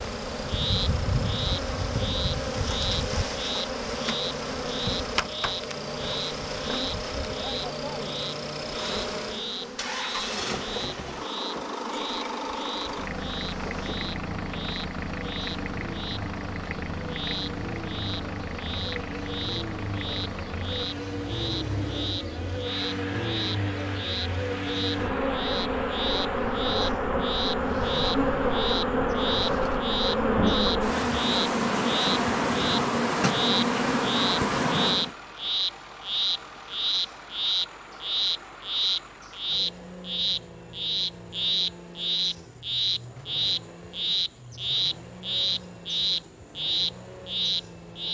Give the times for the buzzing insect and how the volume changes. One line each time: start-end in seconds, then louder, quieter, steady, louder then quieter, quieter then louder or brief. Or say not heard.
0.0-35.1 quieter then louder.